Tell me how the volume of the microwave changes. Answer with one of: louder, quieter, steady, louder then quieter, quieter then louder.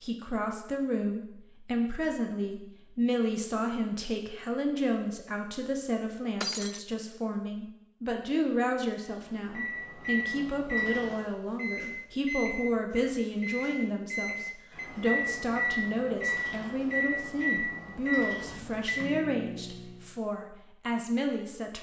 steady.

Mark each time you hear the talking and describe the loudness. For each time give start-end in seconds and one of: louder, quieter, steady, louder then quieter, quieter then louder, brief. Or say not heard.
0.0-21.7 steady.